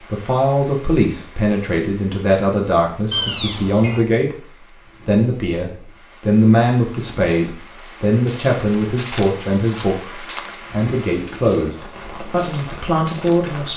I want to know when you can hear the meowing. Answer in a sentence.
You can hear the meowing from 3.1 to 4.0 s.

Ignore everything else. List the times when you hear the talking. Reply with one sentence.
You can hear the talking from 0.1 to 4.3 s and from 5.0 to 13.7 s.